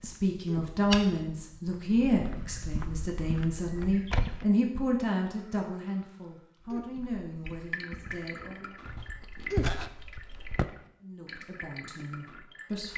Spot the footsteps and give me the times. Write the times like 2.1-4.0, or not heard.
0.0-4.5, 6.6-10.7.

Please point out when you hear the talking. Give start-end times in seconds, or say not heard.
0.0-8.8, 11.0-12.9.